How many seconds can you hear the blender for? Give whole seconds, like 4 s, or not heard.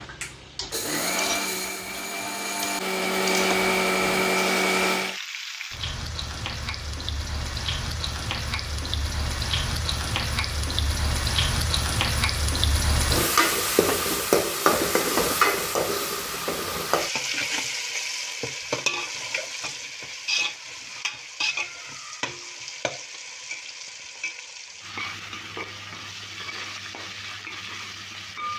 5 s.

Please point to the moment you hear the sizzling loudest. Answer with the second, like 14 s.
15 s.